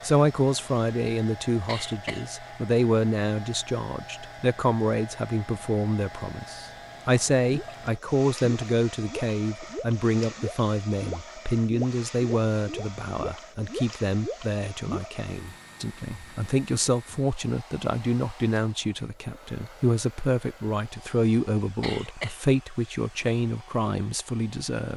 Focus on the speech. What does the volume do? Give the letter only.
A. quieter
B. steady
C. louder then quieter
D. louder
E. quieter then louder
B.